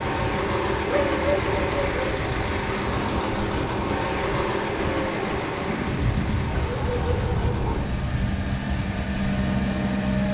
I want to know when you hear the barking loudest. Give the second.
1 s.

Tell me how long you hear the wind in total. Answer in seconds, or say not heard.
10 s.